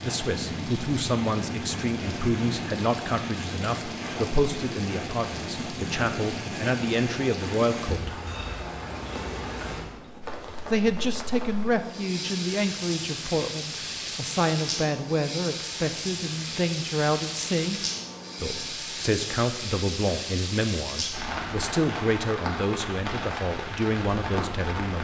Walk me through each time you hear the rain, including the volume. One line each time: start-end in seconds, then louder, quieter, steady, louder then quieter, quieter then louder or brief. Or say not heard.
0.0-24.9 steady.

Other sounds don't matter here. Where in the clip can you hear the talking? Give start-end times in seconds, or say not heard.
0.0-8.2, 10.7-17.8, 18.4-24.9.